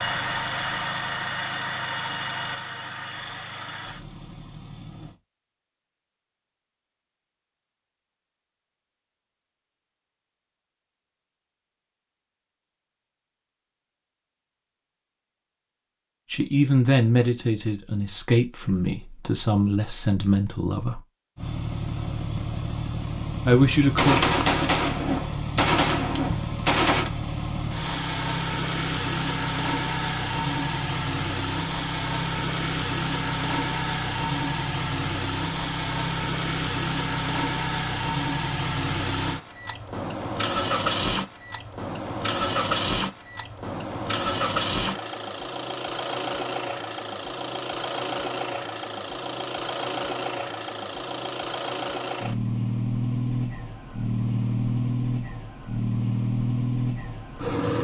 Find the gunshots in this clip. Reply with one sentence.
You can hear the gunshots from 23.8 to 27.1 s.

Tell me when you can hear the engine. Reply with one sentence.
The engine can be heard from 0.0 to 5.2 s and from 21.4 to 57.7 s.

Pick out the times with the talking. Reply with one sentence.
You can hear the talking from 16.3 to 21.0 s and from 23.4 to 24.2 s.